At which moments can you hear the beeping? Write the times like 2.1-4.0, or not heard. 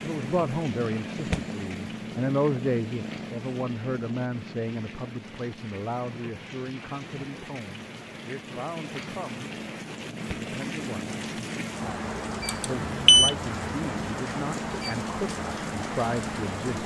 12.4-13.3.